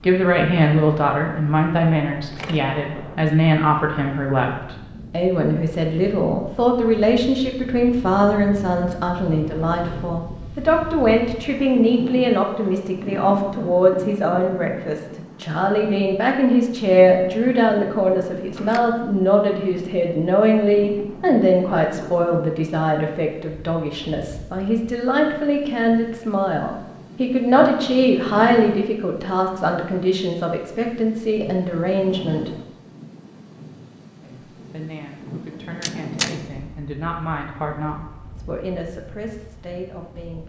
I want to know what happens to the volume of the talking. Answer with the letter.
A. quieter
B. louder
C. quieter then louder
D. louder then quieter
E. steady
A.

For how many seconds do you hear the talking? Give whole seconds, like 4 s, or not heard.
39 s.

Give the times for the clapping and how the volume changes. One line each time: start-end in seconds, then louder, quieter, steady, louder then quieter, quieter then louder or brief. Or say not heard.
not heard.